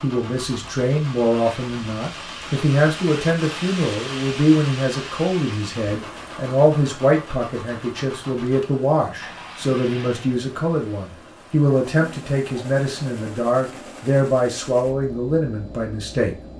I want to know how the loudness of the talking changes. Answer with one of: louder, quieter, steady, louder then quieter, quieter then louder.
steady.